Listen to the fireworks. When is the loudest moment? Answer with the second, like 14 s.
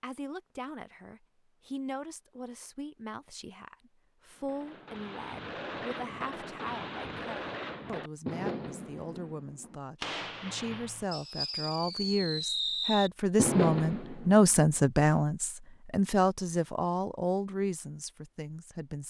14 s.